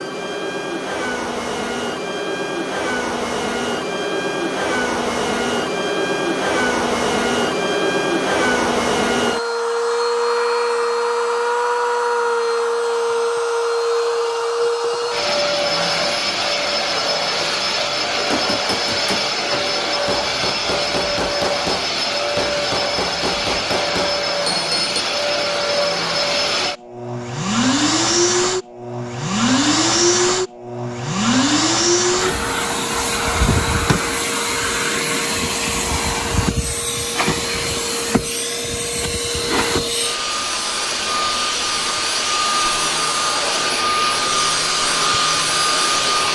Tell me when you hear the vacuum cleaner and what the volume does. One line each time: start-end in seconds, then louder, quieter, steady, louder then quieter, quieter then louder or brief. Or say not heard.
0.0-46.3 steady.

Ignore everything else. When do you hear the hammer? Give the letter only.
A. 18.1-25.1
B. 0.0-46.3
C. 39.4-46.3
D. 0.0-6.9
A.